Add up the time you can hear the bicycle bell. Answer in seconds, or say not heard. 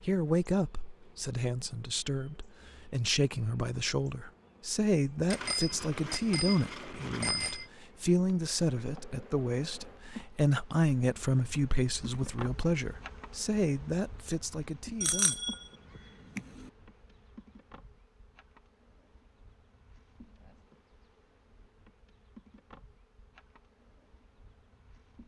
4 s.